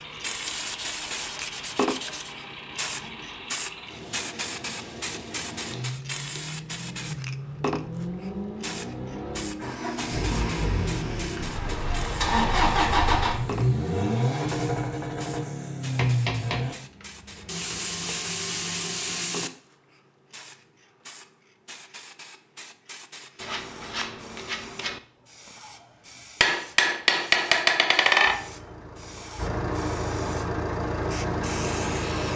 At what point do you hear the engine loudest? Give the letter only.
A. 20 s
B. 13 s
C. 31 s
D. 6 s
B.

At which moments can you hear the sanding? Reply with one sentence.
The sanding can be heard from 0.5 to 2.4 s, from 17.4 to 19.5 s and from 23.4 to 25.0 s.